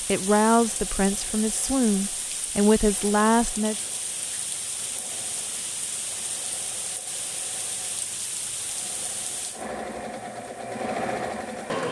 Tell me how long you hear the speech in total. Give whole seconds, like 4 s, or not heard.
4 s.